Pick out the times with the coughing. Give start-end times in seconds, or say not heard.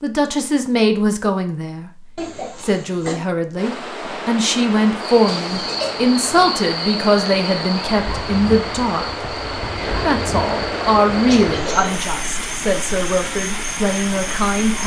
2.1-3.2, 5.2-6.0, 11.2-11.8.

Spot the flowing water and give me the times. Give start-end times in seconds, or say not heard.
3.5-14.8.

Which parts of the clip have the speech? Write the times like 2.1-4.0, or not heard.
0.0-1.9, 2.6-9.2, 10.1-14.8.